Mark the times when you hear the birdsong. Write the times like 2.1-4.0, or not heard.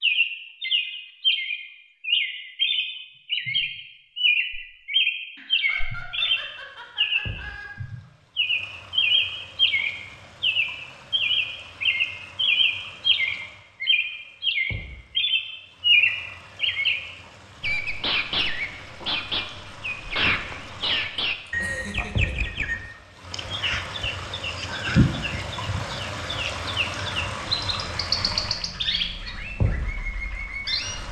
0.0-31.0.